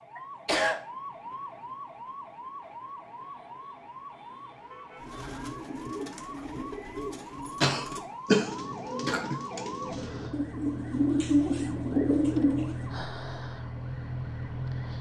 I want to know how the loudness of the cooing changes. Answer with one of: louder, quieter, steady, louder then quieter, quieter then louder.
louder.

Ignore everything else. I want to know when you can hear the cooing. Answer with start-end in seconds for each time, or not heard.
5.0-12.9.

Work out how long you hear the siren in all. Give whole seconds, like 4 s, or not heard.
15 s.